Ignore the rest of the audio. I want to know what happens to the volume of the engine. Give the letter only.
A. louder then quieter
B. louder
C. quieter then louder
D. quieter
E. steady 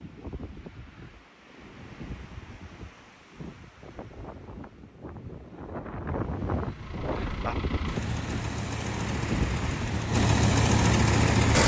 B.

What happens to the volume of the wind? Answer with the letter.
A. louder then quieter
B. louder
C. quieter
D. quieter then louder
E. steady
B.